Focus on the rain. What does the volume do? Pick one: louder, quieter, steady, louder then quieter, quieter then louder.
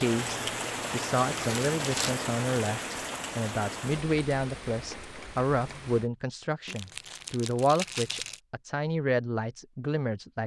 quieter.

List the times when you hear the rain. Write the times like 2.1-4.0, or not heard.
0.0-6.1.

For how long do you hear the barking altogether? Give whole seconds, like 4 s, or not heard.
not heard.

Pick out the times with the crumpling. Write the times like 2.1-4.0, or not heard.
1.4-2.1, 6.7-8.4.